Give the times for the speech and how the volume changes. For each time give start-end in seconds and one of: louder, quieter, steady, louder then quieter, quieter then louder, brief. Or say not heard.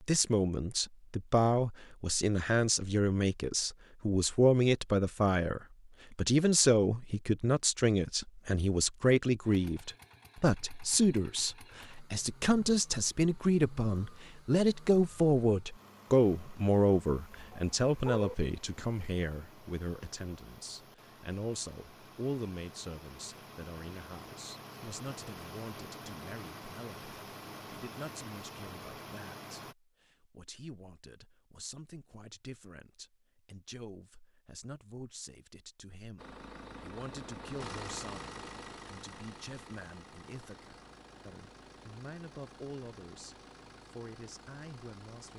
0.0-45.3 quieter.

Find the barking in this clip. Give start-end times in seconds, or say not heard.
17.3-18.4.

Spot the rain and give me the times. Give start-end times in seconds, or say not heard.
not heard.